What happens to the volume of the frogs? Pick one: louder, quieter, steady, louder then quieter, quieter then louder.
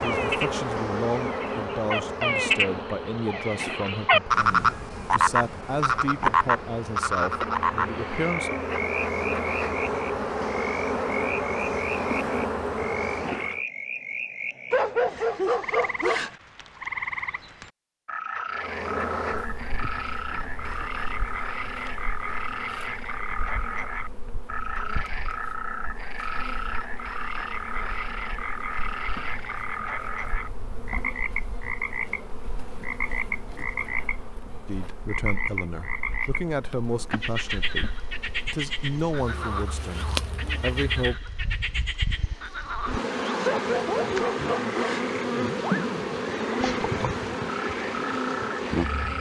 quieter.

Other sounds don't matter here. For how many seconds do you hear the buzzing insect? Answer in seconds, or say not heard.
44 s.